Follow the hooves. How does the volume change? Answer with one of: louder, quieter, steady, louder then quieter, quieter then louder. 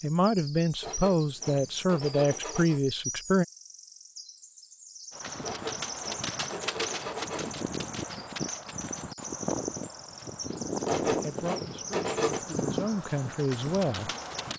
steady.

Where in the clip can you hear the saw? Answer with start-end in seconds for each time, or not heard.
0.8-2.8, 5.4-7.5, 10.8-12.4.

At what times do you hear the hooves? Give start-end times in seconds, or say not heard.
5.1-14.5.